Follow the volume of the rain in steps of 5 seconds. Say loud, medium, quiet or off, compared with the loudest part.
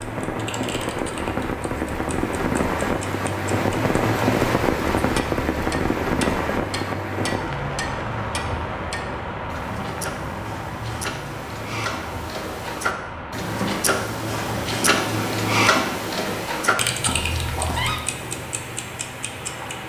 loud, loud, medium, quiet.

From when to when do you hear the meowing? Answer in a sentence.
You can hear the meowing from 17.1 to 18.0 s.